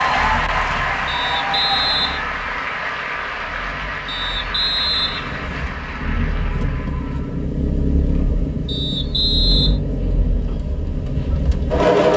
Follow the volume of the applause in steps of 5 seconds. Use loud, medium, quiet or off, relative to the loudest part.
loud, medium, off.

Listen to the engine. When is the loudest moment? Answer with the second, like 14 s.
12 s.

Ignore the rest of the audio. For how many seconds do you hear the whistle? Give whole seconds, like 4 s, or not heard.
4 s.